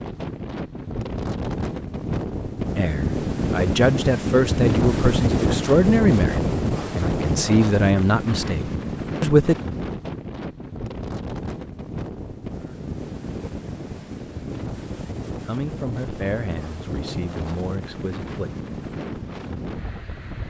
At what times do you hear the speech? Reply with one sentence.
The speech can be heard from 2.8 to 9.6 s and from 15.4 to 18.5 s.